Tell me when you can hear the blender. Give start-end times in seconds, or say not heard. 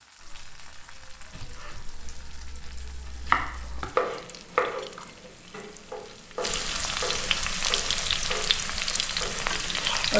not heard.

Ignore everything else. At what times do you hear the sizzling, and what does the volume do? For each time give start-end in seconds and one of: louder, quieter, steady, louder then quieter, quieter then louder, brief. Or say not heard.
0.0-10.1 louder.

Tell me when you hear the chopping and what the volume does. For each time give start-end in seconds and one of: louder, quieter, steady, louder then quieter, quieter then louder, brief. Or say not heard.
0.1-9.4 louder then quieter.